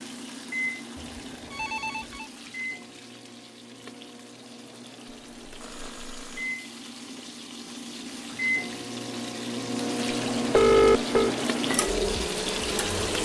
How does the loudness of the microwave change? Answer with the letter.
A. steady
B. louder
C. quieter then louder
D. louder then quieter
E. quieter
C.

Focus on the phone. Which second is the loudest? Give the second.
11 s.